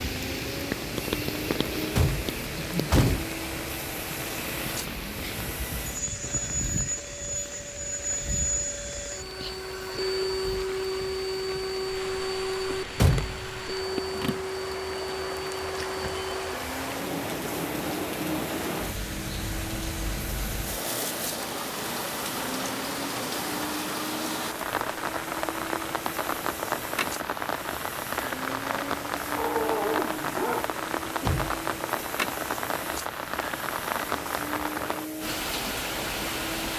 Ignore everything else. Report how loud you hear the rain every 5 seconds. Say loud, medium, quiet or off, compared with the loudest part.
loud, medium, medium, loud, loud, loud, loud, loud.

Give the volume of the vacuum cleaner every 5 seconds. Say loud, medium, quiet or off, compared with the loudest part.
medium, loud, loud, medium, medium, medium, medium, medium.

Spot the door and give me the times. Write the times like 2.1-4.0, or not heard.
1.9-3.3, 12.7-13.6, 31.2-31.6.